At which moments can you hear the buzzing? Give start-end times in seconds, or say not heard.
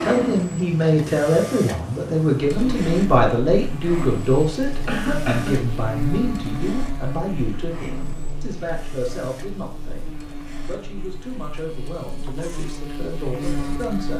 2.6-14.1.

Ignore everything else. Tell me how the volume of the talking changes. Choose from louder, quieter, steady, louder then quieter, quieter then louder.
quieter.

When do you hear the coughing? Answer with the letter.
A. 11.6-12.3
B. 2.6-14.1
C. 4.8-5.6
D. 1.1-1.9
C.